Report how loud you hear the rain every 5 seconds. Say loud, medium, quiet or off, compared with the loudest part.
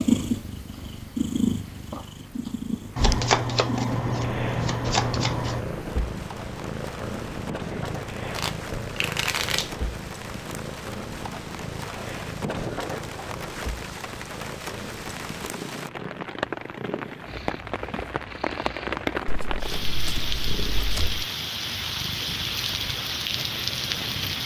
quiet, medium, medium, loud, loud.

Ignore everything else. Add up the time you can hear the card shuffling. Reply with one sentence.
The card shuffling can be heard for 6 seconds in total.